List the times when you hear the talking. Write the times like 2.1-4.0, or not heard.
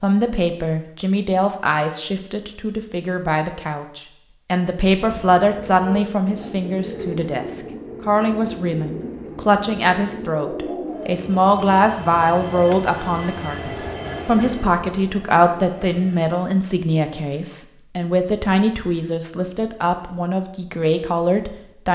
0.0-21.9.